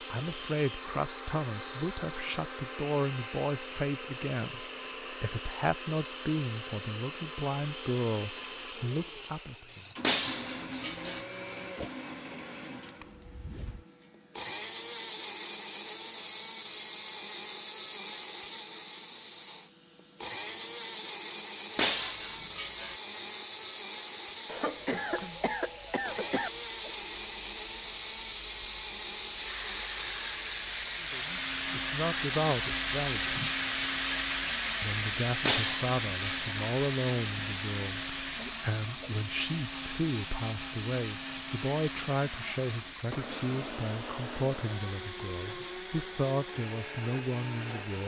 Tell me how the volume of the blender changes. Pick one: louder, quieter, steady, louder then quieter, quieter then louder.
steady.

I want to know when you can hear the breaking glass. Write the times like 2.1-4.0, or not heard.
10.0-11.2, 21.8-22.9, 35.5-36.5.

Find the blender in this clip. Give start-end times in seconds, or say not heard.
0.0-48.0.